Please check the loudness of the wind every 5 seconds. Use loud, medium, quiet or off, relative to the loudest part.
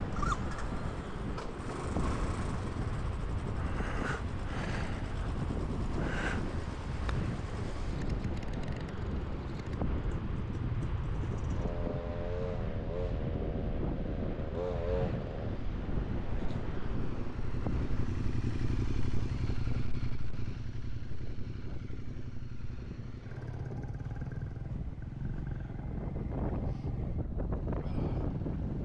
loud, loud, loud, loud, medium, loud.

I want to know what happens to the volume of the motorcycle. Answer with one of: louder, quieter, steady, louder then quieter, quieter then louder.
steady.